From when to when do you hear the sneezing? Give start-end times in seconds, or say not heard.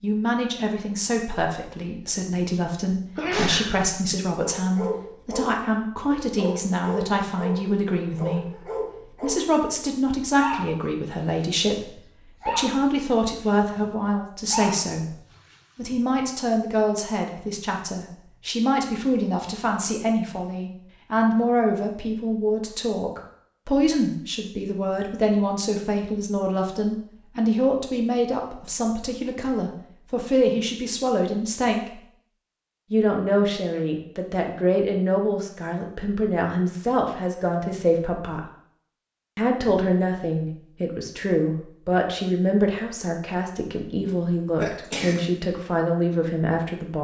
3.1-3.9, 44.6-45.3.